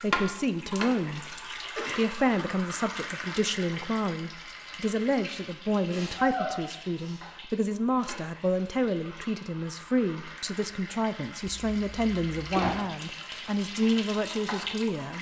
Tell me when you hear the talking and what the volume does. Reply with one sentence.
The talking can be heard briefly from 0.0 to 1.4 s; and from 1.9 to 15.1 s, at a steady volume.